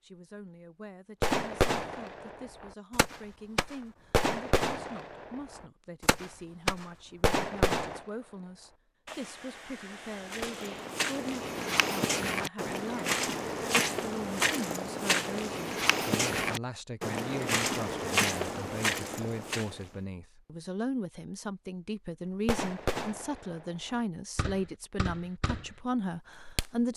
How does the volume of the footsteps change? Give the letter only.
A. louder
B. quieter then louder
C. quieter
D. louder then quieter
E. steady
E.